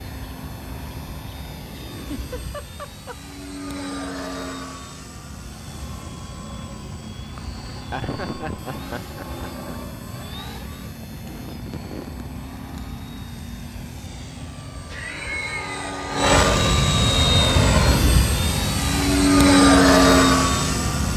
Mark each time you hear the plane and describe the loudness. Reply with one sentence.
You can hear the plane from 0.0 to 21.1 s, getting louder.